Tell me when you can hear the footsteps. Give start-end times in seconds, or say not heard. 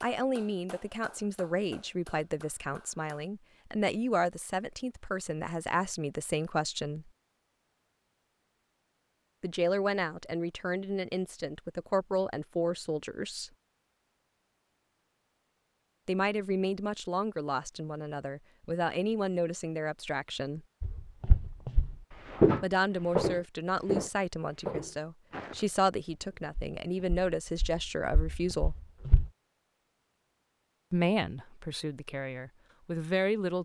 20.8-29.3.